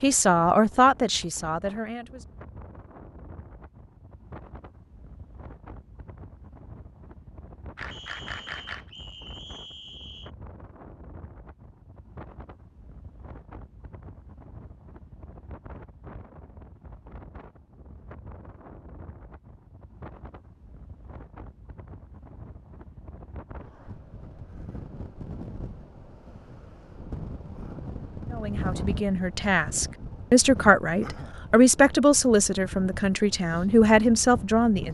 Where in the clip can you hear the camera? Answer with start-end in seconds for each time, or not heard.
7.8-8.9.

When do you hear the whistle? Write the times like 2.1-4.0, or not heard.
7.9-10.3.